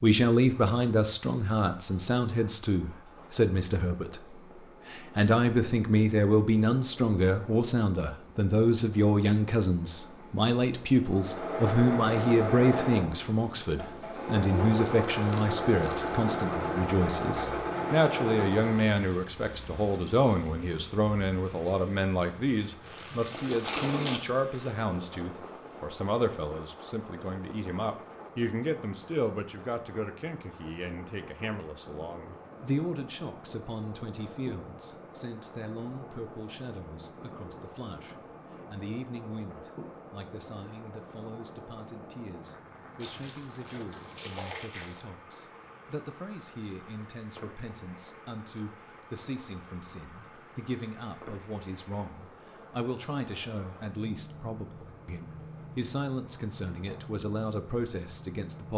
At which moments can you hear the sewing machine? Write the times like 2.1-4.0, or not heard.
11.1-18.9.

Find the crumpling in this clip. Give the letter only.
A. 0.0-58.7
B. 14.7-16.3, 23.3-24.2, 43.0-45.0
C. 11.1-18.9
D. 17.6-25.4
B.